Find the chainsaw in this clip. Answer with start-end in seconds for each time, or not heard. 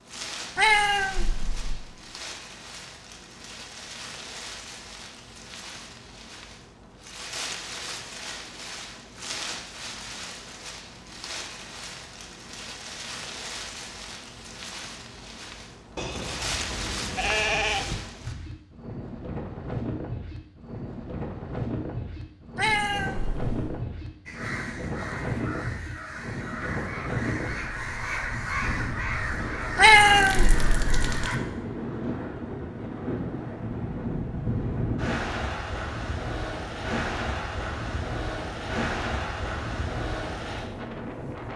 not heard.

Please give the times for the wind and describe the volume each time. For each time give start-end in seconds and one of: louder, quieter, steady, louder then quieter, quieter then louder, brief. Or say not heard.
0.0-41.5 louder.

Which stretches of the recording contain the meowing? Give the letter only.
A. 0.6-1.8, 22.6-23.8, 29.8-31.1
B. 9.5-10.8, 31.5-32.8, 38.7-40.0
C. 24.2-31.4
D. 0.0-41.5
A.